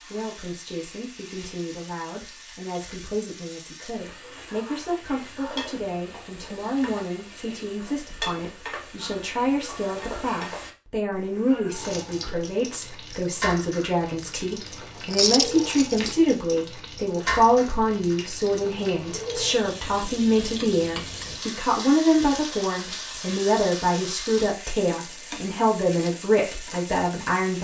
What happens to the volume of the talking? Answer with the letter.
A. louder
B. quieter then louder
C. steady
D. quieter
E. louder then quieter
A.